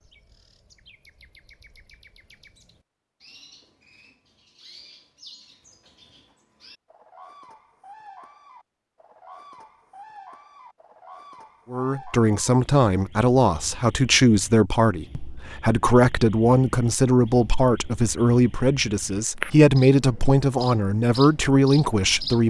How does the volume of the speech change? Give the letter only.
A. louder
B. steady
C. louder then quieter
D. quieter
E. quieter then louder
B.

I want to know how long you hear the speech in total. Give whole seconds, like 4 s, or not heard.
11 s.